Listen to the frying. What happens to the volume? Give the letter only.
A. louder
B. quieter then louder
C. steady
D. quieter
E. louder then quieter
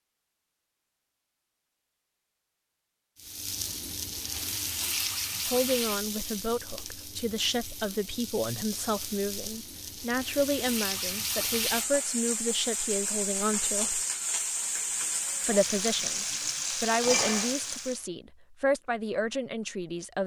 B.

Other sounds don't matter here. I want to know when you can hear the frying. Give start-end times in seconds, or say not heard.
3.1-18.1.